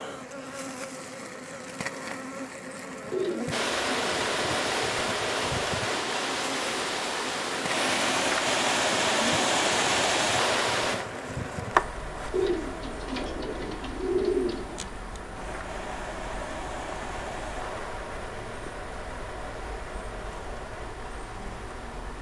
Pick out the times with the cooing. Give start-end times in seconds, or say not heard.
3.1-4.7, 12.3-14.9.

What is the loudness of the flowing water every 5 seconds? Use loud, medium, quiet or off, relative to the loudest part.
loud, loud, medium, medium, quiet.